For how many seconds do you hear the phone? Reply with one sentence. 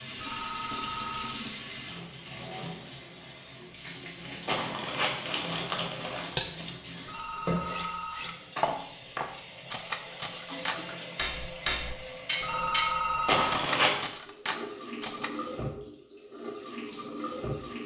The phone can be heard for 4 seconds in total.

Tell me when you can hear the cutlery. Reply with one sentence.
You can hear the cutlery from 5.8 to 15.3 s.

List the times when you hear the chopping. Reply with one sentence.
The chopping can't be heard in this clip.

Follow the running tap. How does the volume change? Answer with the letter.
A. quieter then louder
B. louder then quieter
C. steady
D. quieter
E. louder
C.